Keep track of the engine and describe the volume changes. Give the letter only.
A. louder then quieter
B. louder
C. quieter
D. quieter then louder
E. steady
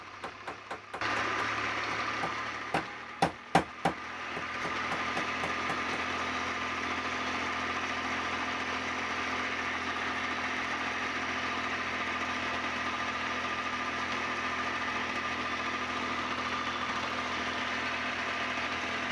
E.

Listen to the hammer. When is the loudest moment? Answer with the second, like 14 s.
4 s.